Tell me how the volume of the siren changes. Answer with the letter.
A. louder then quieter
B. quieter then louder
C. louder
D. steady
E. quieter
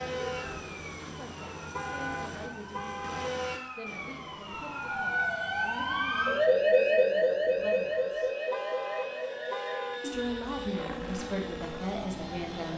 A.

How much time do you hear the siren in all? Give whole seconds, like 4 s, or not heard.
13 s.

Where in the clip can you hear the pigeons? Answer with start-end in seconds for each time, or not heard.
not heard.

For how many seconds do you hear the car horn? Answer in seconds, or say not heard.
3 s.